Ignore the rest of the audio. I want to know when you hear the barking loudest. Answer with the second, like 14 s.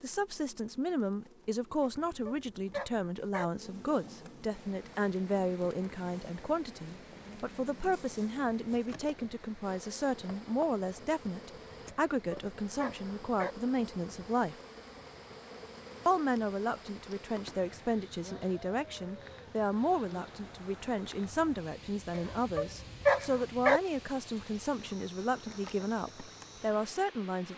23 s.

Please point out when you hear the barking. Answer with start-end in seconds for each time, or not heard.
1.8-3.5, 12.1-13.6, 22.1-23.8.